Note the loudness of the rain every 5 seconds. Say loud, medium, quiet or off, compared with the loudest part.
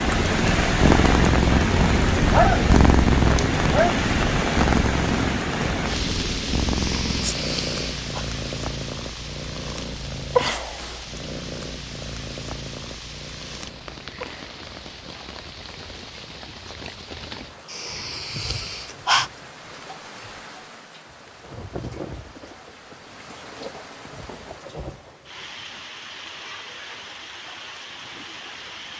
loud, medium, quiet, quiet, quiet, quiet.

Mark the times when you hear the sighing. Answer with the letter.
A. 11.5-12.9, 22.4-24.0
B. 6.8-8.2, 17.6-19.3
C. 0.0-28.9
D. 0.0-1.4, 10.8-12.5
B.